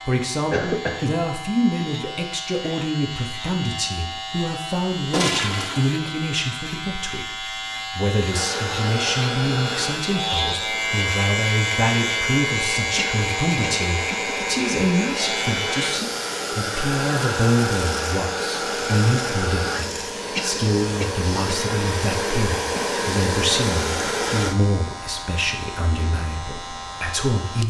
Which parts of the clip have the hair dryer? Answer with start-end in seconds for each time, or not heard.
8.2-24.6.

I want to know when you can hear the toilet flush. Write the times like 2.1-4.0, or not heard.
5.1-6.0.